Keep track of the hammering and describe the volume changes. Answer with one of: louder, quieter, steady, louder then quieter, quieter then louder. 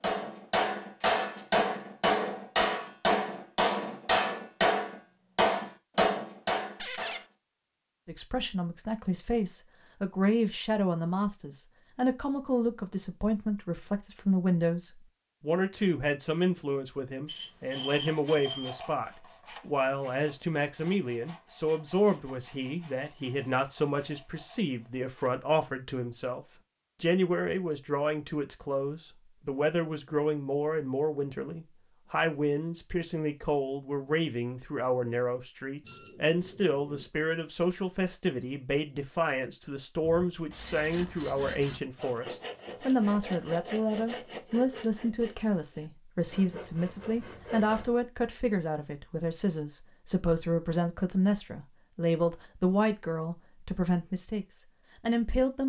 steady.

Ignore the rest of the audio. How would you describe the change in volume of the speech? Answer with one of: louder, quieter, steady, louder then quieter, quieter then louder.
steady.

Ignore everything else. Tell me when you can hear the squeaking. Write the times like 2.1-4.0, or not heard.
6.8-7.2, 40.5-41.0.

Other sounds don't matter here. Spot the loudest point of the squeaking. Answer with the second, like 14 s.
7 s.